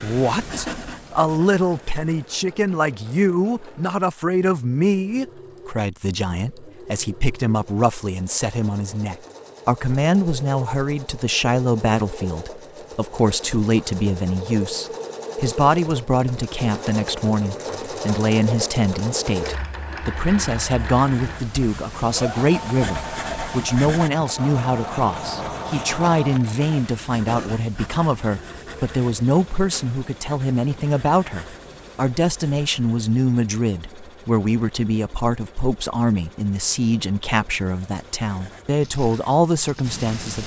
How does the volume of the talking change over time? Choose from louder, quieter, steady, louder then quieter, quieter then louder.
steady.